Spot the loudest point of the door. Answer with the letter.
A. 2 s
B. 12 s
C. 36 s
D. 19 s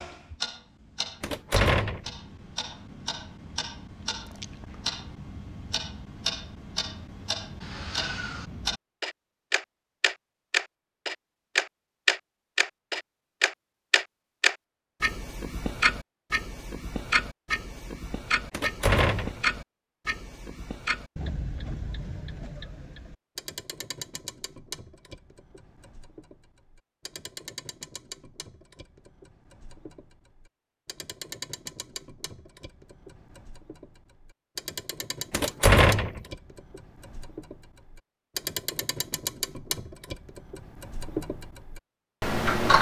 C.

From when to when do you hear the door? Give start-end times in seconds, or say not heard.
1.2-2.1, 18.5-19.4, 35.3-36.2.